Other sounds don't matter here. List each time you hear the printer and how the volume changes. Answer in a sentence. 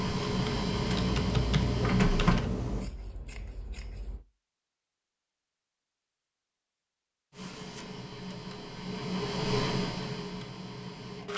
You can hear the printer briefly from 0.0 to 2.4 s; and from 7.3 to 11.3 s, getting louder then quieter.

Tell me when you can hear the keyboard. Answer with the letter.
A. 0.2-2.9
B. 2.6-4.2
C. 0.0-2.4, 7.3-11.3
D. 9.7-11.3
A.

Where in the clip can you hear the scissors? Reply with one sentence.
The scissors can be heard from 2.6 to 4.2 s.